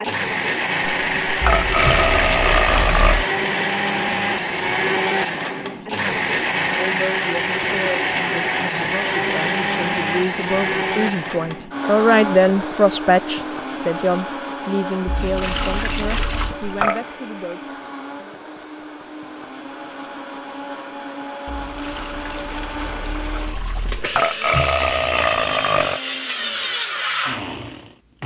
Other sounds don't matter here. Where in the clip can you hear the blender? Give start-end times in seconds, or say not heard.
0.0-28.2.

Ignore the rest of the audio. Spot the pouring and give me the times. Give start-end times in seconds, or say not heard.
1.4-3.2, 15.1-16.6, 21.4-24.0.